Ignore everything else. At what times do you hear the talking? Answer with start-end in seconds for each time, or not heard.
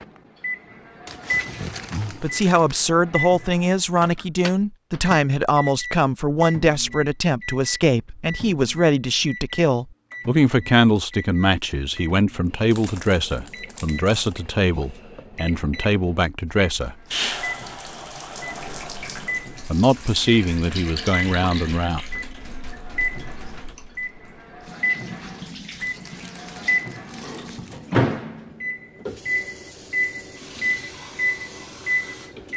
2.2-16.9, 19.6-22.0.